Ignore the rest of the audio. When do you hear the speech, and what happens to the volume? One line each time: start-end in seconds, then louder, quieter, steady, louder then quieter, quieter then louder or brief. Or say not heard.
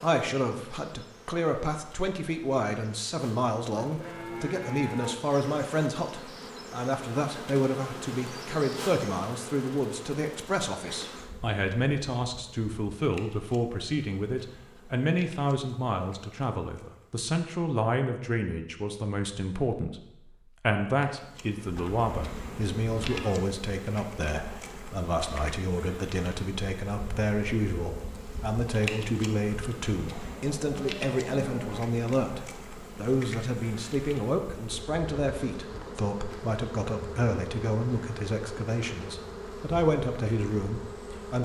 0.0-41.4 steady.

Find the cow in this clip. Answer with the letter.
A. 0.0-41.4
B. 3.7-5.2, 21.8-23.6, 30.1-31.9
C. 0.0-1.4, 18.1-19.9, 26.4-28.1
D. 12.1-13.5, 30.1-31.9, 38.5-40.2
B.